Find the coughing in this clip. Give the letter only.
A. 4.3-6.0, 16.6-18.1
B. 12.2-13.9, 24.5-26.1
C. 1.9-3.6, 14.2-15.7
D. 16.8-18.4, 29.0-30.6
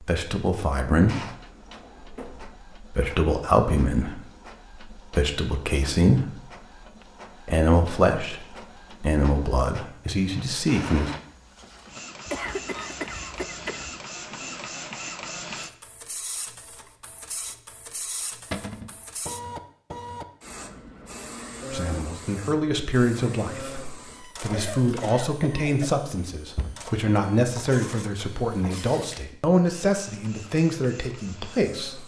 B.